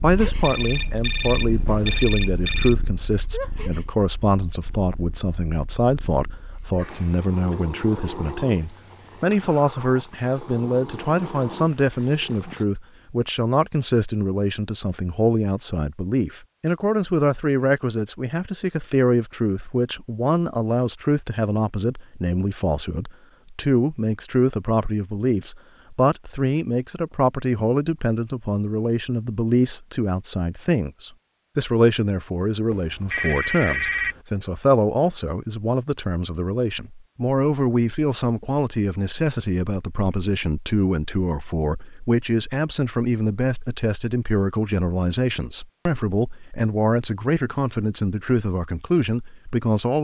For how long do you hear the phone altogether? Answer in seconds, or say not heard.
4 s.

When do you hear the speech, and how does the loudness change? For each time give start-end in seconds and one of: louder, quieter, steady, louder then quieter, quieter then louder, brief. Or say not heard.
0.0-49.9 steady.